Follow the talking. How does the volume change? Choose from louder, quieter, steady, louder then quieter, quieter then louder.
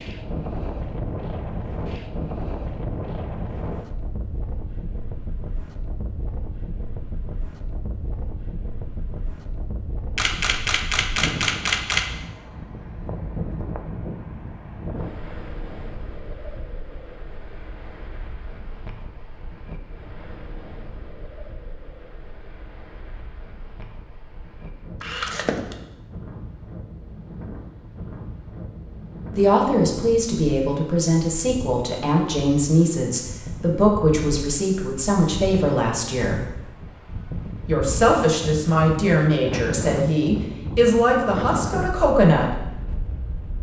steady.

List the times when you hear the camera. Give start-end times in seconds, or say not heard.
10.2-12.1, 25.0-25.8.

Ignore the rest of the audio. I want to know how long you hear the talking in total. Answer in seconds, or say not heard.
12 s.